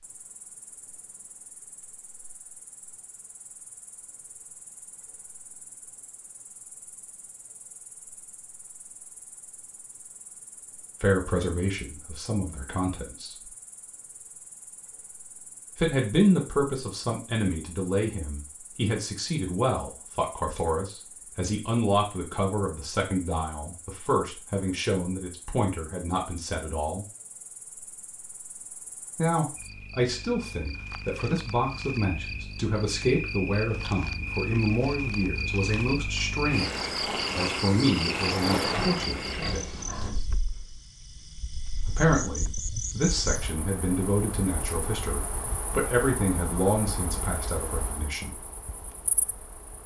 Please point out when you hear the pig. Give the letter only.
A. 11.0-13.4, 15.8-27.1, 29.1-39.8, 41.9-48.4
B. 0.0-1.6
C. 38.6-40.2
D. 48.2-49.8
C.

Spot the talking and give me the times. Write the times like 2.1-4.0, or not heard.
11.0-13.4, 15.8-27.1, 29.1-39.8, 41.9-48.4.